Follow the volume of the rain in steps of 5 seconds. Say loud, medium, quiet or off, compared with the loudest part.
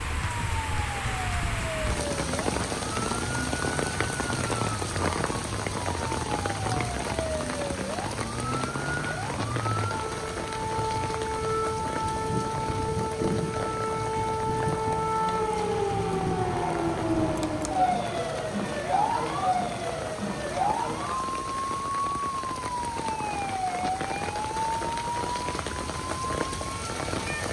loud, loud, medium, medium, medium, loud.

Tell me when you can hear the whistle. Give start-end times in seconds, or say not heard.
not heard.